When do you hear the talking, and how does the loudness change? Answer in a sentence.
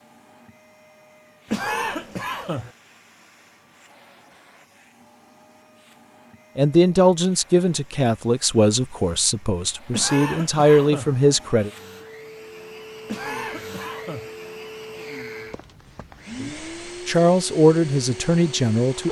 You can hear the talking from 6.5 to 11.7 s, getting quieter then louder; and briefly from 16.4 to 19.0 s.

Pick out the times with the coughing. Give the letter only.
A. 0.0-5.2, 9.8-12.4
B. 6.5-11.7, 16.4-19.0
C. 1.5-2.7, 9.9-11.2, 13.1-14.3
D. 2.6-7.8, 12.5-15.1
C.